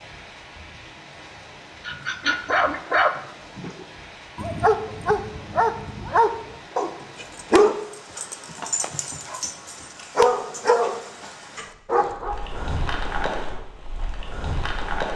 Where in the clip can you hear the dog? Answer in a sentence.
You can hear the dog from 1.9 to 13.7 s.